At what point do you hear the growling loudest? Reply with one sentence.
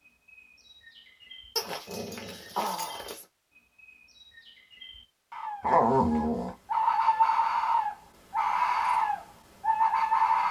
The volume of the growling peaks at 6 seconds.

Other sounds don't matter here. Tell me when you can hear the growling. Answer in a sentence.
The growling can be heard from 1.6 to 3.2 s and from 5.6 to 6.5 s.